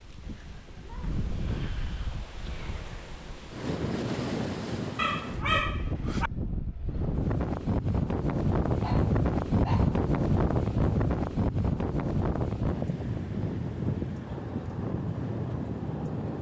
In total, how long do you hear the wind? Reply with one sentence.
You can hear the wind for 16 seconds altogether.